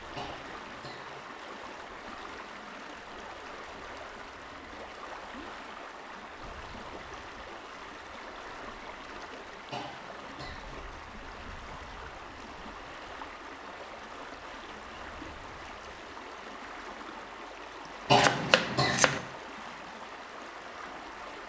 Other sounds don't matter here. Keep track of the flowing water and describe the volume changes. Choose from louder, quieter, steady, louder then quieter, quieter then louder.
steady.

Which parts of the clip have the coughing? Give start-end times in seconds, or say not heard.
0.1-1.2, 9.7-10.8, 18.1-19.2.